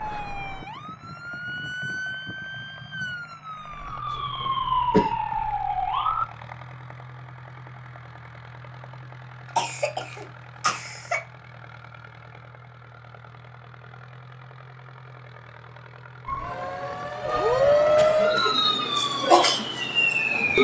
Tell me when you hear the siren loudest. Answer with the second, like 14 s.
18 s.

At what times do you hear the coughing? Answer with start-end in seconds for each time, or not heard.
4.1-5.1, 9.6-11.2, 17.4-18.6.